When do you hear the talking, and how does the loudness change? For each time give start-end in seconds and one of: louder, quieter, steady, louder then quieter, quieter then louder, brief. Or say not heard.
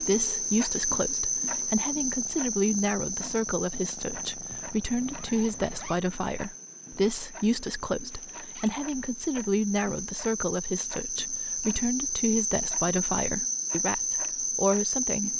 0.0-15.3 steady.